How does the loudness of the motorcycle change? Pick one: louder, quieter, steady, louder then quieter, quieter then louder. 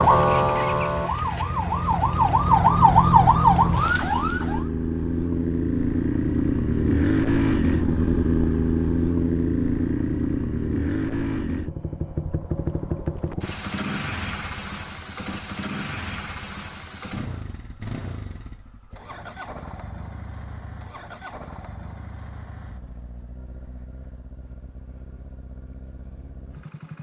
louder then quieter.